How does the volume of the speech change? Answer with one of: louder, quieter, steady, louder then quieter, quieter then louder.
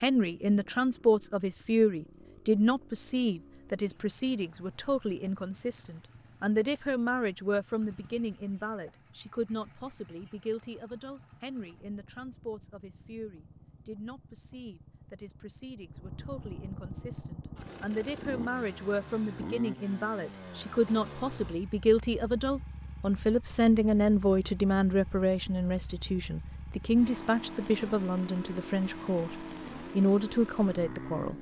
quieter then louder.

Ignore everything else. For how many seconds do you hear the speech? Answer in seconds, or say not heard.
31 s.